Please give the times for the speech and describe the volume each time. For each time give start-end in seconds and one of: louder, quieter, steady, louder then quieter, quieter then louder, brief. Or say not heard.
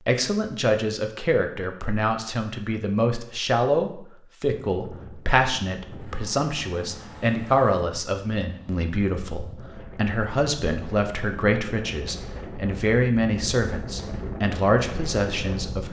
0.0-15.8 steady.